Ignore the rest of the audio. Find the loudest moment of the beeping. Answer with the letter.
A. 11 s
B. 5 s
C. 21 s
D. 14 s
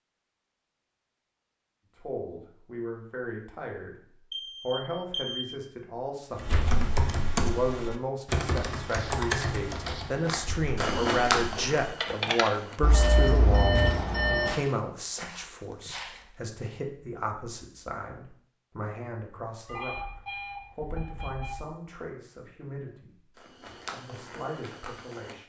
D.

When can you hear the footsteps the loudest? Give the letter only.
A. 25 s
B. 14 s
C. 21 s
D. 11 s
D.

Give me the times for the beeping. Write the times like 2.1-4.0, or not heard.
4.3-5.4, 12.8-14.6, 19.6-21.6.